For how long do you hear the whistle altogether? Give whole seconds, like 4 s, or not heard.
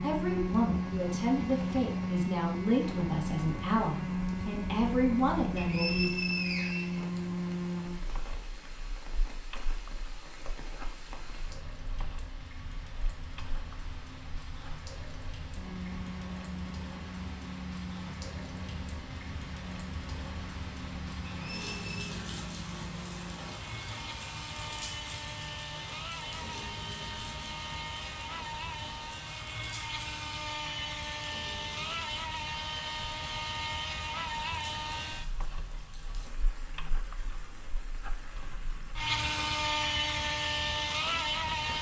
2 s.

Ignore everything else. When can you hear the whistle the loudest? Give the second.
6 s.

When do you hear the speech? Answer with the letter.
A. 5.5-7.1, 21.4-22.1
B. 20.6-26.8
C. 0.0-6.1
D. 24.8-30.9
C.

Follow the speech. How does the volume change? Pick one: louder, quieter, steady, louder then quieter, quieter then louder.
steady.